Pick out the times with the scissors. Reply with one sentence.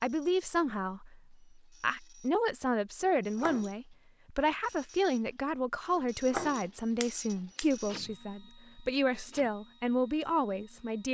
The scissors can be heard from 3.0 to 3.7 s and from 5.9 to 8.1 s.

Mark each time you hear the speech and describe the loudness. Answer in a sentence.
The speech can be heard from 0.0 to 11.0 s, at a steady volume.